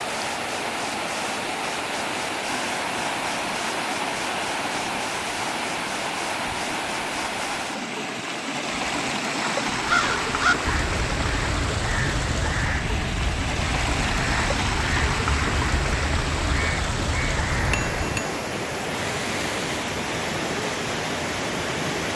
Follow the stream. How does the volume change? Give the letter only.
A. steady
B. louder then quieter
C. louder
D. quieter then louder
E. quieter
A.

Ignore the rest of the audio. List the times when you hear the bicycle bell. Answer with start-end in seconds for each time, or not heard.
17.7-18.4.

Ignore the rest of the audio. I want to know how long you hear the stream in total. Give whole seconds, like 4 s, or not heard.
22 s.